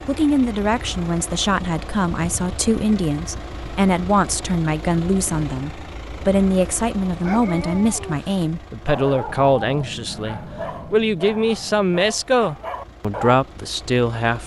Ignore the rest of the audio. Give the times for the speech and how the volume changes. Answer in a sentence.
The speech can be heard from 0.1 to 14.4 s, at a steady volume.